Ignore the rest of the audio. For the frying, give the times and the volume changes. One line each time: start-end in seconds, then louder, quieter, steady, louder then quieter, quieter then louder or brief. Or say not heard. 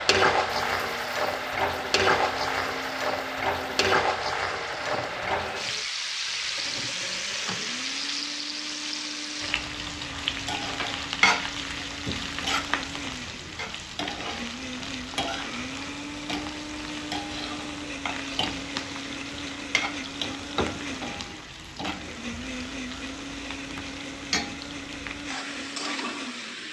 0.0-26.6 quieter.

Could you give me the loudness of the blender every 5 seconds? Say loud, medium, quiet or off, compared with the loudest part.
medium, medium, loud, loud, loud, loud.